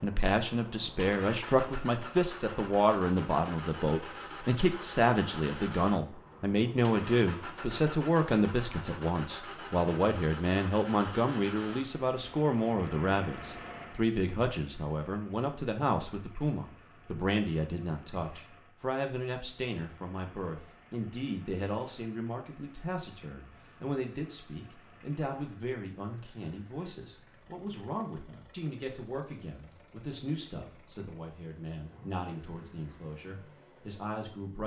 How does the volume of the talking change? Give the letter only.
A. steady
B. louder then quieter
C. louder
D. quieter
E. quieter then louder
D.